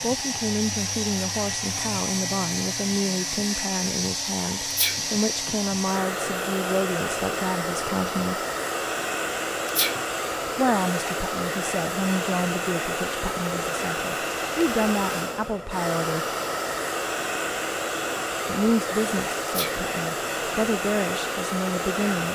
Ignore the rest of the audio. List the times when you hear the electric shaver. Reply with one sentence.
The electric shaver can't be heard in this clip.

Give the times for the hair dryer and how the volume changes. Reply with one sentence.
The hair dryer can be heard from 0.0 to 22.2 s, at a steady volume.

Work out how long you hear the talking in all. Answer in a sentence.
You can hear the talking for 18 seconds altogether.